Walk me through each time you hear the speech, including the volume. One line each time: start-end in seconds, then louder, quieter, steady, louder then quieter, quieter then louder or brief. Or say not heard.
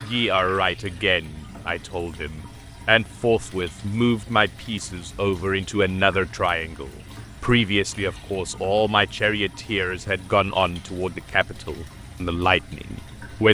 0.0-13.4 steady.